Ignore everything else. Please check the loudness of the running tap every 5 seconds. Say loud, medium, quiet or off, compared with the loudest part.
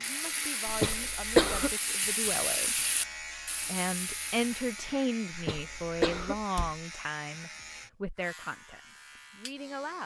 loud, off.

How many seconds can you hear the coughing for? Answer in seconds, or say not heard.
2 s.